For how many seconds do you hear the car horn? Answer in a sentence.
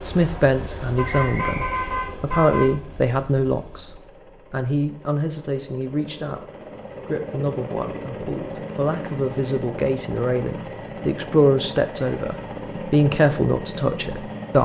You can hear the car horn for 2 seconds altogether.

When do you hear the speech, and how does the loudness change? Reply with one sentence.
You can hear the speech from 0.0 to 14.6 s, getting quieter then louder.